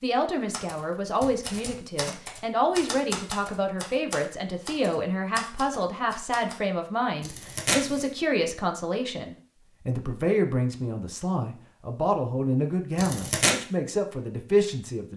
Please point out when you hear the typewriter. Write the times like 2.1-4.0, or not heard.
0.5-6.6.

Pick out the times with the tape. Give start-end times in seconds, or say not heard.
1.4-2.2, 7.2-8.1, 12.9-13.6.